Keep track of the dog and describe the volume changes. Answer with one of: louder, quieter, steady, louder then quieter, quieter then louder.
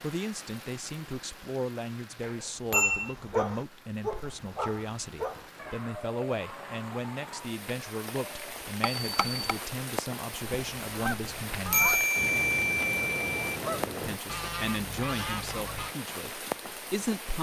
quieter.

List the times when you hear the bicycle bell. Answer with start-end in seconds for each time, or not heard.
2.2-3.1, 8.8-9.6, 11.7-13.3.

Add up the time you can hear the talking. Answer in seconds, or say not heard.
15 s.